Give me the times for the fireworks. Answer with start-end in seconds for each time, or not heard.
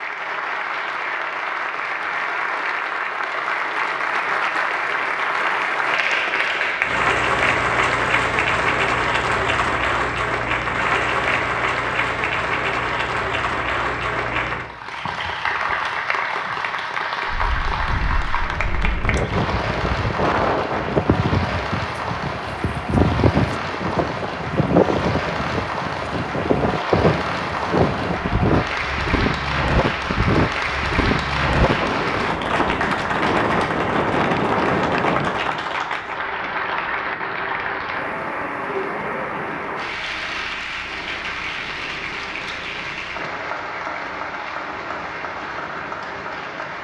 not heard.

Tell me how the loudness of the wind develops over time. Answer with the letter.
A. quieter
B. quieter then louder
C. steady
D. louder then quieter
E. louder
A.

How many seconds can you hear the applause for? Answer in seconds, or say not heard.
47 s.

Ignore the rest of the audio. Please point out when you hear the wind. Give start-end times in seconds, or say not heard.
17.2-46.7.